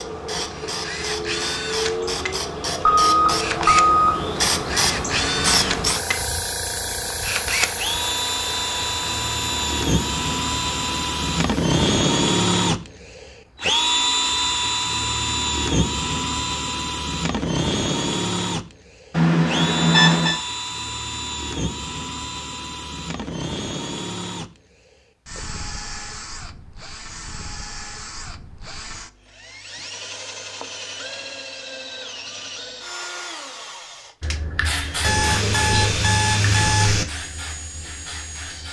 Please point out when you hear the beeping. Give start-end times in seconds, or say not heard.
2.9-4.2, 19.1-20.4, 35.0-37.0.